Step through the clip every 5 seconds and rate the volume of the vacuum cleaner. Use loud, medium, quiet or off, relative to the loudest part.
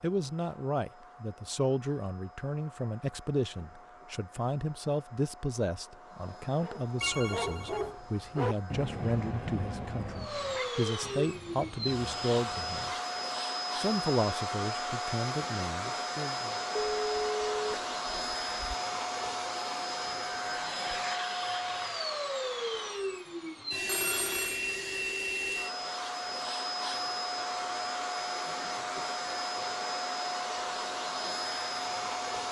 quiet, quiet, loud, loud, loud, loud, loud.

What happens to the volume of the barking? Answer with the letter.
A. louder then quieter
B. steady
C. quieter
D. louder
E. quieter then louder
C.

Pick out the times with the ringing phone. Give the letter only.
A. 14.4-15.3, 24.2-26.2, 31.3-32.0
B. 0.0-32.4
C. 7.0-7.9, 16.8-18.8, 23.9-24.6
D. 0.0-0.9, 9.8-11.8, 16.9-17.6
C.